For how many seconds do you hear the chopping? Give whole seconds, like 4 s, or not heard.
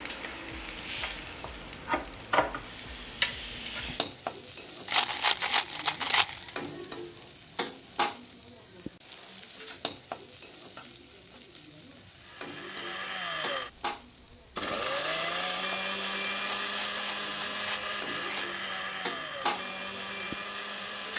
not heard.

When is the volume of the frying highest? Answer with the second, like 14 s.
3 s.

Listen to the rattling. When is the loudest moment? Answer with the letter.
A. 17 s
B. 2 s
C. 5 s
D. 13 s
C.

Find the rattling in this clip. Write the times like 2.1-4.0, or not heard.
4.8-6.5, 16.4-18.6.